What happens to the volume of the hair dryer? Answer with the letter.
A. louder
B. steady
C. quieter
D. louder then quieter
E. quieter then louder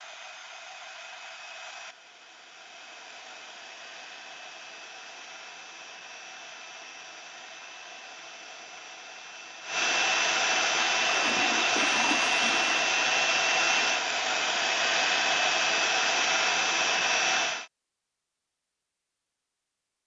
A.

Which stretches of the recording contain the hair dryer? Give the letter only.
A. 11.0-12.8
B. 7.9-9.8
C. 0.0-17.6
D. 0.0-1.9
C.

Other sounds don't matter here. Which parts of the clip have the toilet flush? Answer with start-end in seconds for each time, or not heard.
11.0-12.8.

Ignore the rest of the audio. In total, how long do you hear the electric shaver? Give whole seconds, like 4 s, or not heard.
not heard.